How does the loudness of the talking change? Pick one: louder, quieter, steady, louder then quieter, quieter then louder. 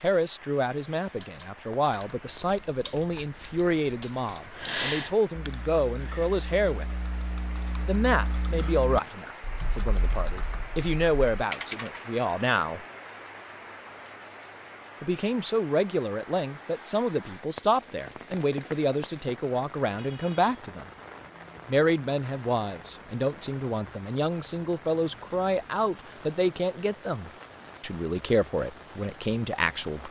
steady.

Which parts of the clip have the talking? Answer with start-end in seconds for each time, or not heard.
0.0-6.8, 7.8-12.8, 15.0-20.9, 21.6-30.0.